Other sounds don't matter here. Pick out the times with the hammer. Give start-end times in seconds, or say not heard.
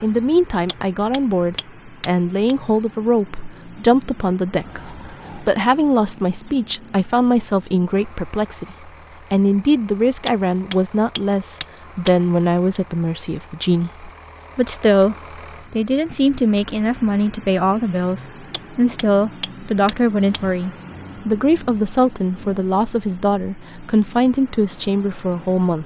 0.7-2.5, 10.2-12.1, 18.5-20.4.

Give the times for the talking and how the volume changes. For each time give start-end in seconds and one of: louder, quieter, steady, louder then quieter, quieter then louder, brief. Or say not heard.
0.0-25.8 steady.